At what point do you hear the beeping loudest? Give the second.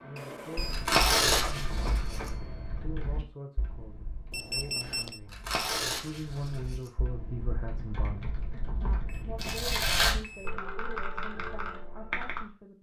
5 s.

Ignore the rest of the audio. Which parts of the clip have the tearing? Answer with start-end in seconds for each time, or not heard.
0.7-2.3, 5.3-6.9, 9.3-10.2.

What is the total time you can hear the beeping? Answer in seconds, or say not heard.
3 s.